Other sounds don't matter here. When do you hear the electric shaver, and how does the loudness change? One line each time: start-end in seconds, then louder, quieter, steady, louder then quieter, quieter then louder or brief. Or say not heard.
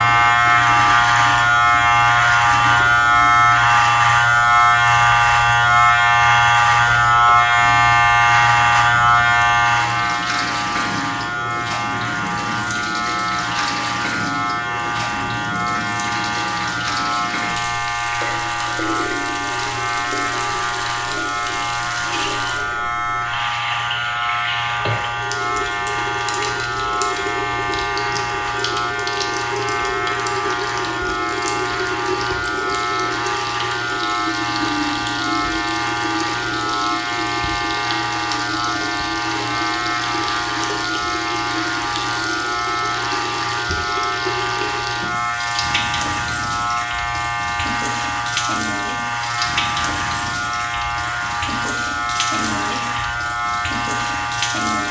0.0-54.8 quieter.